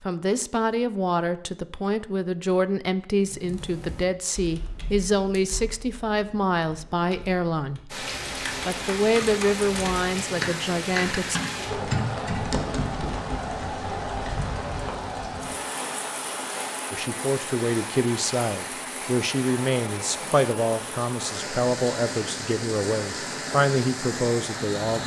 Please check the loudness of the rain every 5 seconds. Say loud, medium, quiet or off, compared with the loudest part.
off, loud, loud, loud, loud.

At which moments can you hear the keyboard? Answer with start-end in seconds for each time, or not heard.
3.2-13.7.